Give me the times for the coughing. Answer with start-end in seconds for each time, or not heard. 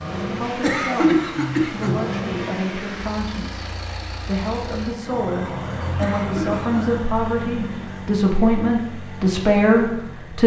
0.6-1.9, 6.0-6.7.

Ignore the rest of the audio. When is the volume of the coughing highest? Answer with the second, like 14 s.
1 s.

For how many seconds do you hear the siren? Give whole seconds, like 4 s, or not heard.
3 s.